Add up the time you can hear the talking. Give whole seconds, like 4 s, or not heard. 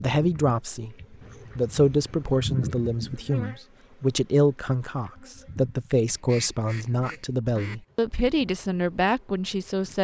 9 s.